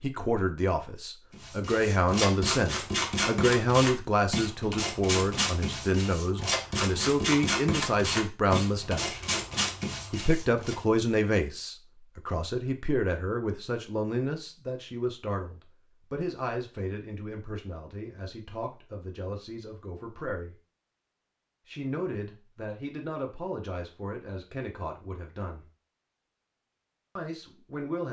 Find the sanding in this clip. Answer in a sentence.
The sanding can be heard from 1.3 to 10.8 s.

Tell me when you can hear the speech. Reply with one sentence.
The speech can be heard from 0.0 to 9.2 s, from 10.1 to 20.6 s, from 21.6 to 25.6 s and from 27.1 to 28.0 s.